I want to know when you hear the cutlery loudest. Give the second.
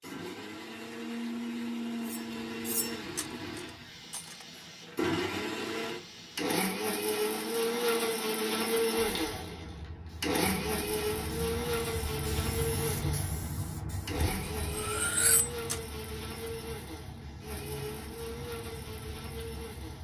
15 s.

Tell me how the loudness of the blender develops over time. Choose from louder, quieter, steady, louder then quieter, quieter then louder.
louder then quieter.